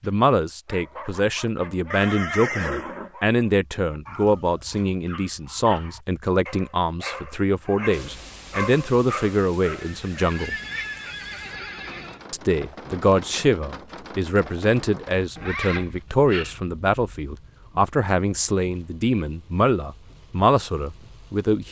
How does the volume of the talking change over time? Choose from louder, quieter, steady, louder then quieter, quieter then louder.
steady.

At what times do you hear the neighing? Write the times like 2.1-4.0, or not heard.
1.9-3.1, 9.8-12.2, 15.3-16.6.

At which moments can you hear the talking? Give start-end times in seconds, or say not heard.
0.0-10.6, 12.3-21.6.